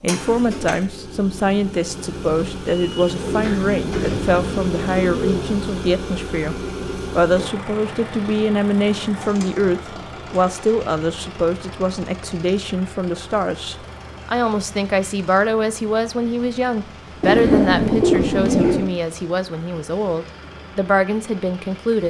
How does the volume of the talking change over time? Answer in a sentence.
The volume of the talking stays about the same.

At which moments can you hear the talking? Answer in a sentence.
The talking can be heard from 0.0 to 22.0 s.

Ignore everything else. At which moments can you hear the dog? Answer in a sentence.
You can't hear the dog here.